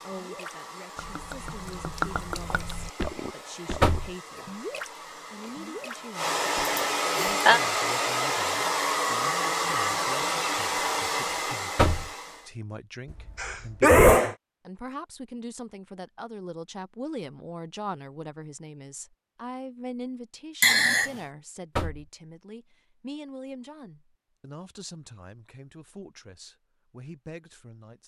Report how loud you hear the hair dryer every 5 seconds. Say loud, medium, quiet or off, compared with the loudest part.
quiet, loud, loud, off, off, off.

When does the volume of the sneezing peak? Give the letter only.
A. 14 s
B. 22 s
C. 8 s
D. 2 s
A.